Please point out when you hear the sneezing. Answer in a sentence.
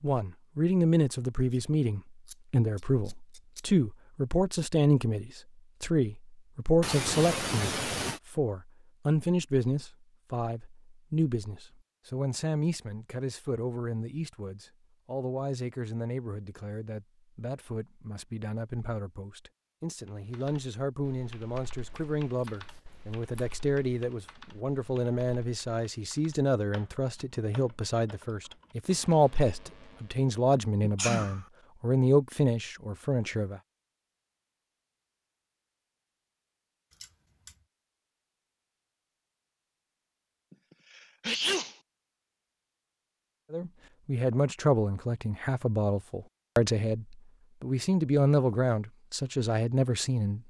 You can hear the sneezing from 6.8 to 8.2 s, from 30.8 to 31.4 s and from 40.5 to 41.8 s.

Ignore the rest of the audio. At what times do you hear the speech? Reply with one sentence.
The speech can be heard from 0.0 to 33.6 s and from 43.5 to 50.4 s.